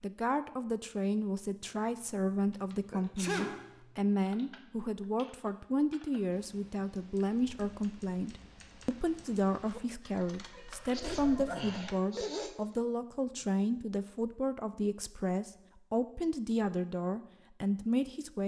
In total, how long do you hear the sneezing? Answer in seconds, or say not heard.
3 s.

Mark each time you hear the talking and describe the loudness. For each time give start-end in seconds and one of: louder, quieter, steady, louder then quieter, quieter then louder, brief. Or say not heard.
0.0-18.4 steady.